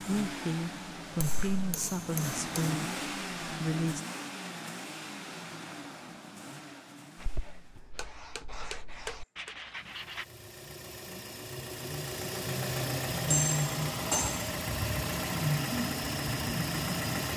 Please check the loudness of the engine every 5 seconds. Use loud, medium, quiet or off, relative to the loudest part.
medium, quiet, loud, loud.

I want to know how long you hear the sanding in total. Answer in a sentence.
You can hear the sanding for 3 seconds altogether.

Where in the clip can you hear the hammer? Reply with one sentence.
The hammer can be heard from 1.2 to 2.7 s, from 8.0 to 9.5 s and from 13.3 to 14.5 s.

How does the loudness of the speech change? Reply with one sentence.
The loudness of the speech goes down.